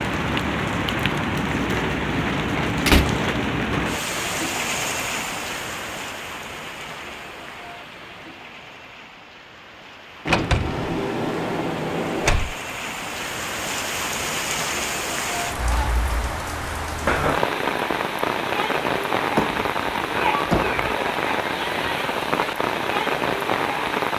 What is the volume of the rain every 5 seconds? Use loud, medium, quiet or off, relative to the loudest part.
loud, medium, medium, loud, loud.